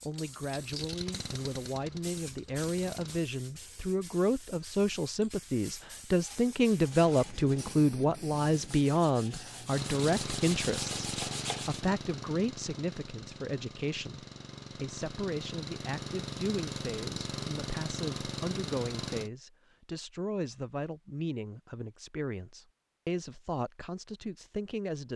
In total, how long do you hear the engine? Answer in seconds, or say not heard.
13 s.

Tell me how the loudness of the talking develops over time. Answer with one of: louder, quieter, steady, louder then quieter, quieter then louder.
louder then quieter.